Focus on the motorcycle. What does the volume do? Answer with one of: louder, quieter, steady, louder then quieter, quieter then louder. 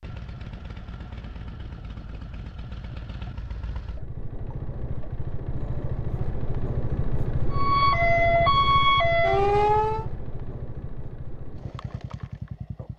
louder then quieter.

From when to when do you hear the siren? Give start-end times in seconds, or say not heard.
7.5-10.1.